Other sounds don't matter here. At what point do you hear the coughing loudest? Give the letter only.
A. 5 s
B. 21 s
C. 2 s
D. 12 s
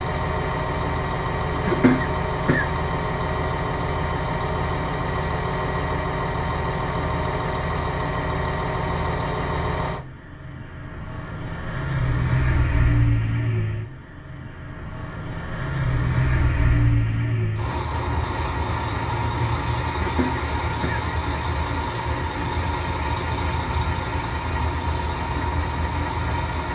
C.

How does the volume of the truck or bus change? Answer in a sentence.
The volume of the truck or bus stays about the same.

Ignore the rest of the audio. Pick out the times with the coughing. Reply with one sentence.
You can hear the coughing from 1.5 to 2.6 s and from 19.9 to 21.1 s.